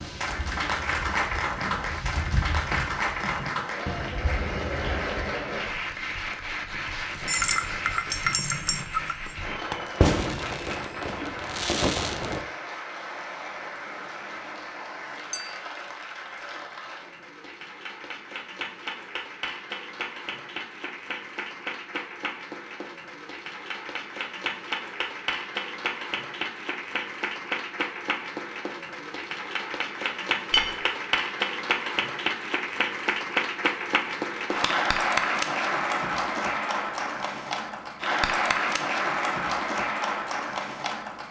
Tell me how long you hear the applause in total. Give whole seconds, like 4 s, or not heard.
41 s.